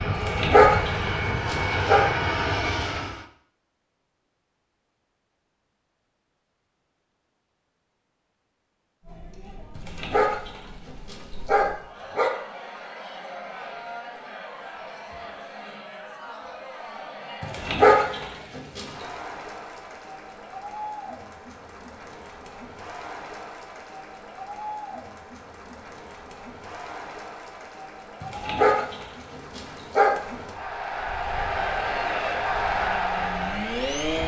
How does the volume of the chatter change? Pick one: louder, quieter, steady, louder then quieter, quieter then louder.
louder.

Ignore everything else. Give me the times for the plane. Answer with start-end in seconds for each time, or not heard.
0.0-3.2, 31.0-34.2.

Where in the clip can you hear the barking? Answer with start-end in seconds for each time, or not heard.
0.1-2.0, 9.8-12.3, 17.4-18.9, 28.2-30.1.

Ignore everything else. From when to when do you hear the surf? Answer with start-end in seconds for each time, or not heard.
not heard.